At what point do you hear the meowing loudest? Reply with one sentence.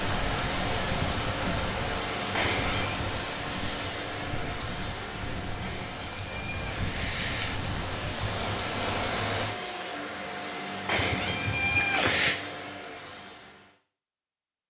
The volume of the meowing peaks at 12 seconds.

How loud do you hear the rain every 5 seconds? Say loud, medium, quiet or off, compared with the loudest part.
loud, loud, off.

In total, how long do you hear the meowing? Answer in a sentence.
You can hear the meowing for 4 seconds altogether.